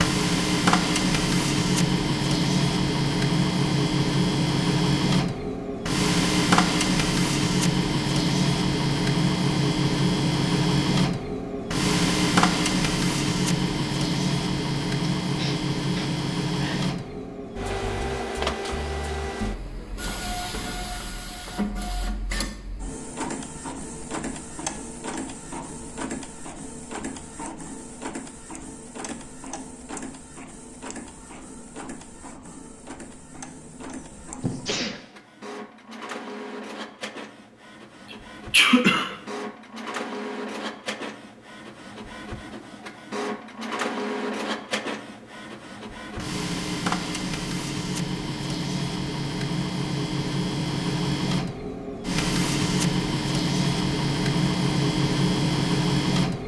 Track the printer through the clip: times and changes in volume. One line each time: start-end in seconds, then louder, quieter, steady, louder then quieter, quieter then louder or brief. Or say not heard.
0.0-56.4 quieter then louder.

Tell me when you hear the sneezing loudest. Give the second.
39 s.